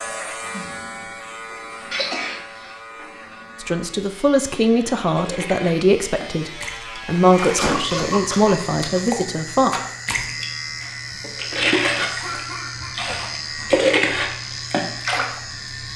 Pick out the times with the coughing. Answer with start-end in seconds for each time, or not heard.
1.9-2.4, 7.0-9.1, 12.0-13.8.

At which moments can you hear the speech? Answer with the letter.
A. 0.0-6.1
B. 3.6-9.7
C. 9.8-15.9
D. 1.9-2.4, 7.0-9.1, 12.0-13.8
B.